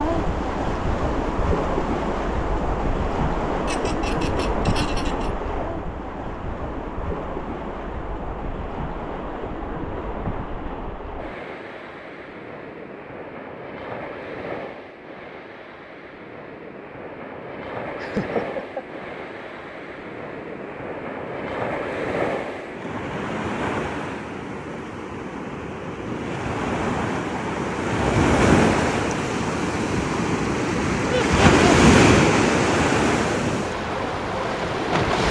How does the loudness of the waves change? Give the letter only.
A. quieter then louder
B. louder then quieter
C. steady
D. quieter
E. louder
A.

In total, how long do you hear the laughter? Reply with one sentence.
You can hear the laughter for 3 seconds altogether.